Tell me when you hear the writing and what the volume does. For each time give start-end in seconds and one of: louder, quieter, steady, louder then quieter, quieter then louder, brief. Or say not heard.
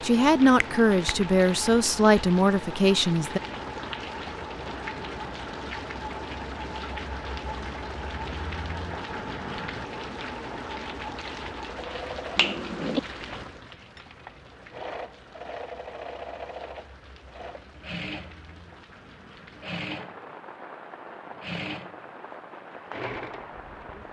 not heard.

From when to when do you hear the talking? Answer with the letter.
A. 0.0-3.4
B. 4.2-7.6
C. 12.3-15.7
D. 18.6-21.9
A.